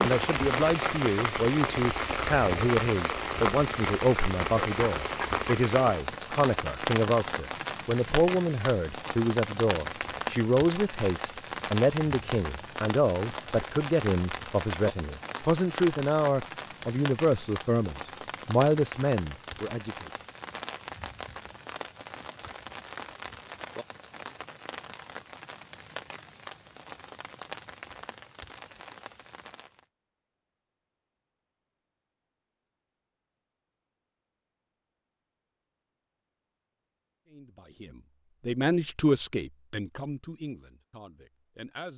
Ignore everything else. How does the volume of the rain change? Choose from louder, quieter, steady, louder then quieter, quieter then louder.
quieter.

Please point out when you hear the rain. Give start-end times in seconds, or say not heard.
0.0-29.9.